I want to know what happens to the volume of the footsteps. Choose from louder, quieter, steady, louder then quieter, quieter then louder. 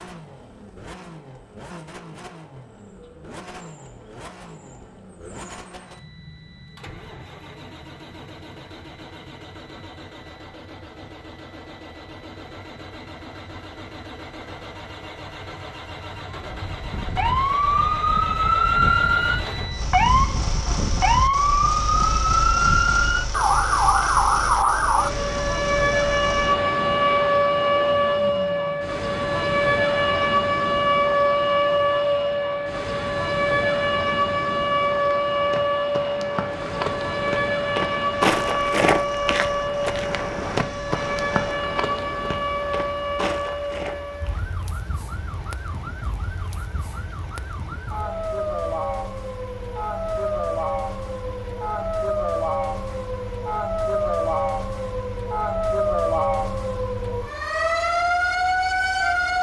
louder then quieter.